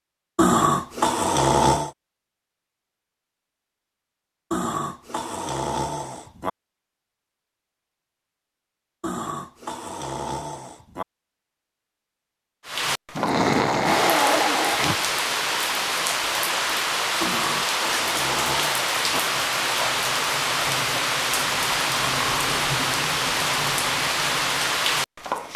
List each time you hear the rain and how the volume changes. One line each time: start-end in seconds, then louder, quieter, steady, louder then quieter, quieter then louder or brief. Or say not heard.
12.7-25.5 steady.